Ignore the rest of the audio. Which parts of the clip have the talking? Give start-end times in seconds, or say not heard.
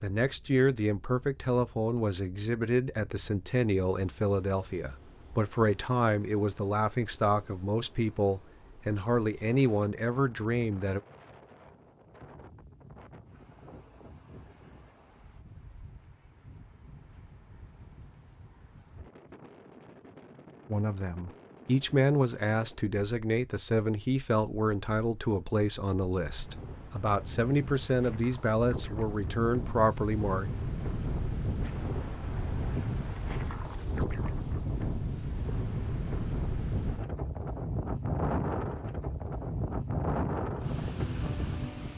0.0-11.0, 20.7-30.5.